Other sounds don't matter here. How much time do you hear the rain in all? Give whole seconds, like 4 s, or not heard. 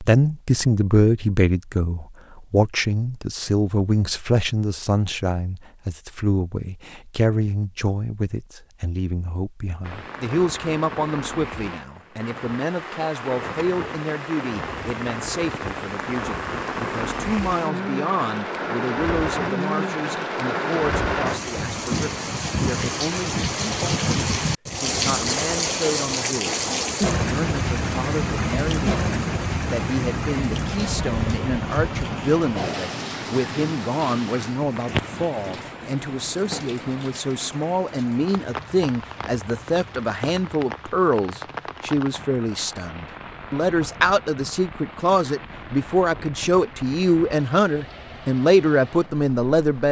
40 s.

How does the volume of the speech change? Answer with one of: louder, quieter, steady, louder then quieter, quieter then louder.
quieter then louder.